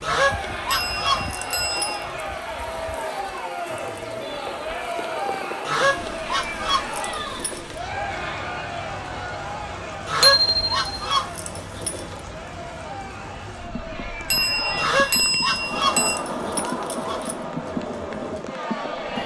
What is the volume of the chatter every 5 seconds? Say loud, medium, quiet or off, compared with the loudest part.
loud, loud, medium, loud.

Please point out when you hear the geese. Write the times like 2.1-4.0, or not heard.
0.0-2.0, 5.7-7.8, 10.1-12.2, 14.8-17.4.